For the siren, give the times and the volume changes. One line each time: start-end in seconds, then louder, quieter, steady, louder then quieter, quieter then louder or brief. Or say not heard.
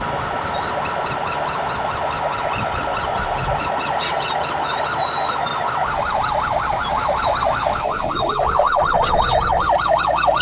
0.0-10.3 louder.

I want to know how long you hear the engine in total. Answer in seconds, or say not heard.
10 s.